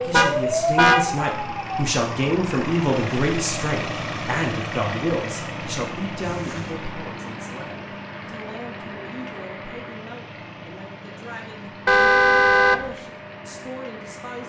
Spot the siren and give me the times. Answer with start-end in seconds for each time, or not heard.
0.0-1.7.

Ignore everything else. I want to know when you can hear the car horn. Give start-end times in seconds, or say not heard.
0.1-1.1, 6.2-6.8, 11.8-12.9.